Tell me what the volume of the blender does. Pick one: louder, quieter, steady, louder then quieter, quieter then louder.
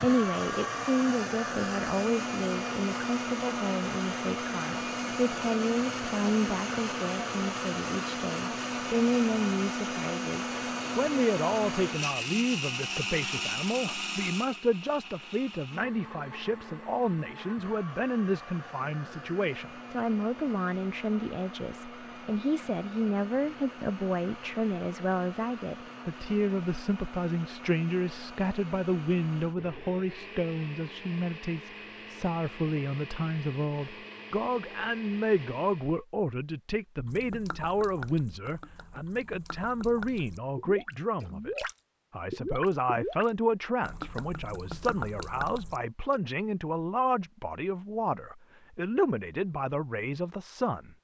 quieter.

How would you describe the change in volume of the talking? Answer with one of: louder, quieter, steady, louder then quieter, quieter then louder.
steady.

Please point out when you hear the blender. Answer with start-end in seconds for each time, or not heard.
0.0-36.0.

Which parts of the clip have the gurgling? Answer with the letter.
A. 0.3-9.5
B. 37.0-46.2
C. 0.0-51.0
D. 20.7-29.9
B.